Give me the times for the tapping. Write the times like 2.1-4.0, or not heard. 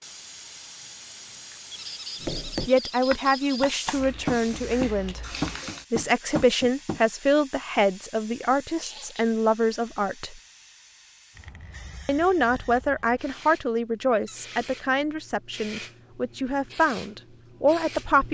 2.2-7.0.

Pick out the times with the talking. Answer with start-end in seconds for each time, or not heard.
2.6-5.2, 5.9-10.4, 12.1-18.2.